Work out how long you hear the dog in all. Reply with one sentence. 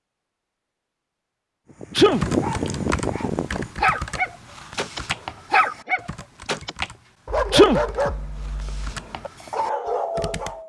You can hear the dog for 9 seconds altogether.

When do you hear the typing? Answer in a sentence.
You can hear the typing from 2.1 to 10.6 s.